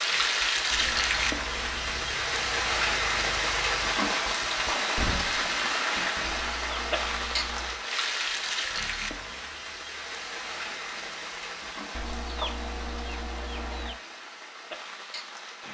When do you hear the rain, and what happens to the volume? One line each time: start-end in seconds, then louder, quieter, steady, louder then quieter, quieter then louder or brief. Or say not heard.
0.0-15.6 quieter.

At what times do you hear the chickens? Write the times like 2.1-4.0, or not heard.
0.7-2.1, 6.2-7.8, 11.9-14.0.